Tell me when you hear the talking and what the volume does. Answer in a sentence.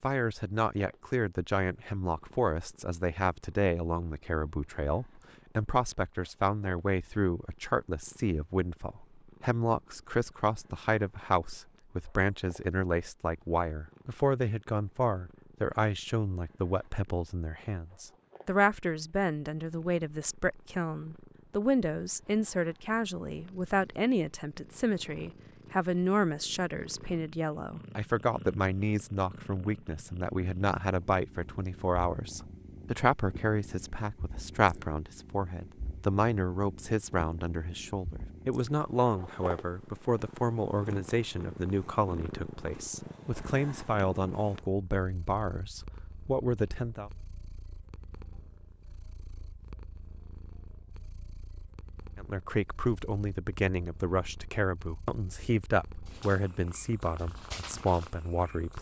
You can hear the talking from 0.0 to 47.1 s, at a steady volume; and from 52.1 to 58.7 s, at a steady volume.